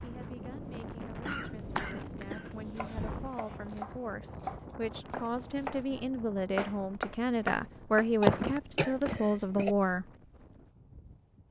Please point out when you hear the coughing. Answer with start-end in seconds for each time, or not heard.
1.2-3.1, 8.2-9.8.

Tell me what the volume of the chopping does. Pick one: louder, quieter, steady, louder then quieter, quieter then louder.
louder.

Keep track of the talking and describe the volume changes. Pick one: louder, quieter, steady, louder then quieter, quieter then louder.
louder.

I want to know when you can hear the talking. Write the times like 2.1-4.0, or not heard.
0.0-10.1.